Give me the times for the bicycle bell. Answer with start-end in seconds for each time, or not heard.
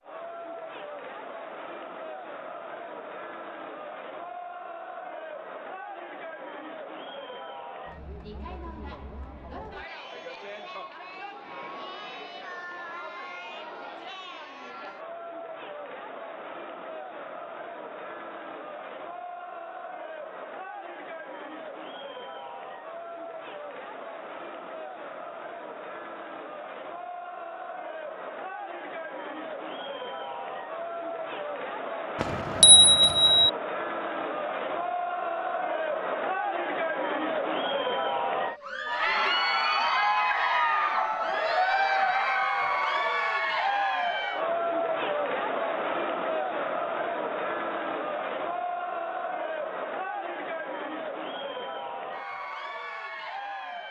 32.2-33.5.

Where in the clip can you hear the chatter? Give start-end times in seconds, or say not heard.
0.0-53.8.